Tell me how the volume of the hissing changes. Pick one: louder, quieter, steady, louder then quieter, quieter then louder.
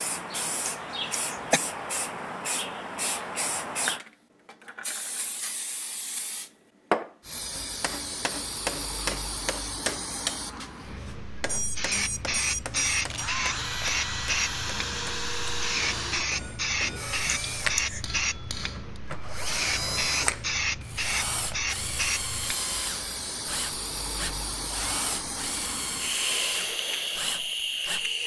steady.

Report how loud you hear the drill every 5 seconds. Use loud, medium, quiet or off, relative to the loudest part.
off, off, loud, loud, loud, loud.